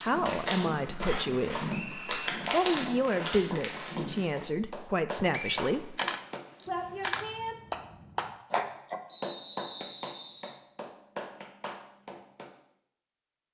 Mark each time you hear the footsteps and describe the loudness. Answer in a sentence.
You can hear the footsteps from 0.0 to 4.3 s, at a steady volume.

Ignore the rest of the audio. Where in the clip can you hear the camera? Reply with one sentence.
You can hear the camera from 5.7 to 7.2 s.